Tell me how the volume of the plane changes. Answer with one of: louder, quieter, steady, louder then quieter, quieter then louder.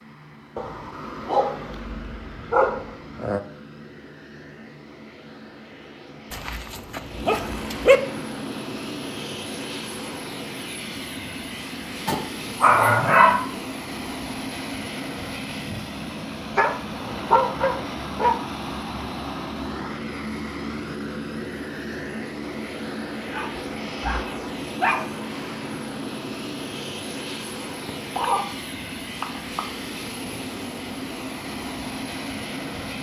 louder.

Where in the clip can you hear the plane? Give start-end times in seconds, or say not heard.
0.0-32.9.